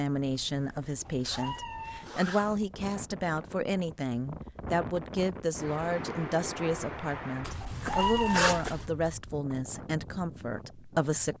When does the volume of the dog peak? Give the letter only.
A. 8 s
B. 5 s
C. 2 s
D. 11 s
A.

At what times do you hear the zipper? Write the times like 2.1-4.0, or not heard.
0.5-2.5, 7.5-8.8.